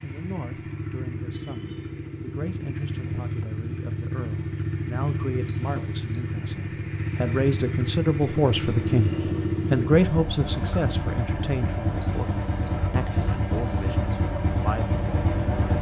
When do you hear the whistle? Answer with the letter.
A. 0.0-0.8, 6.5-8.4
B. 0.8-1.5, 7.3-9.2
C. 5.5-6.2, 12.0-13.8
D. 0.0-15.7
C.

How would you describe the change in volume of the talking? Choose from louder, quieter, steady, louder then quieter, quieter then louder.
louder then quieter.